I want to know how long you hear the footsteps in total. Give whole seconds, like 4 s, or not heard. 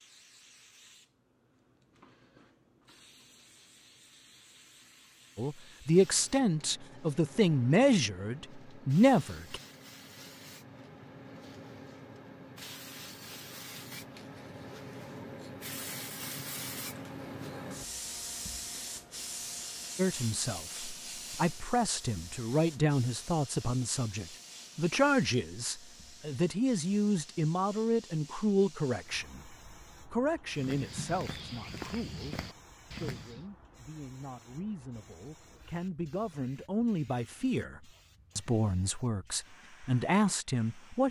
3 s.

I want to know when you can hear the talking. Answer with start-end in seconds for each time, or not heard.
5.3-9.6, 19.9-41.0.